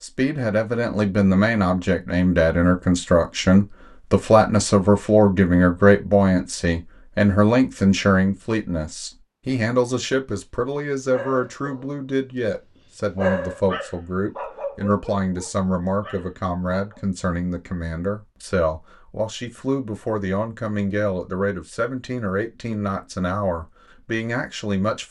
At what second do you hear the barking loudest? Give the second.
13 s.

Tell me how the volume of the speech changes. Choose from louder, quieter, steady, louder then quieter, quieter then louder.
quieter.